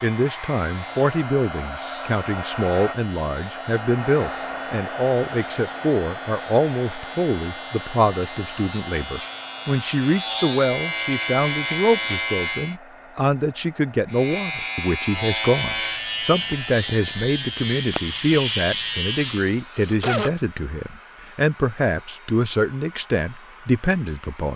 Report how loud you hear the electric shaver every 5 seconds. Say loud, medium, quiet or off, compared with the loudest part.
quiet, medium, loud, loud, off.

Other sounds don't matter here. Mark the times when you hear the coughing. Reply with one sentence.
The coughing can be heard from 19.2 to 20.3 s.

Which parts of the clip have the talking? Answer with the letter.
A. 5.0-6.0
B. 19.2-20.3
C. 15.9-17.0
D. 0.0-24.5
D.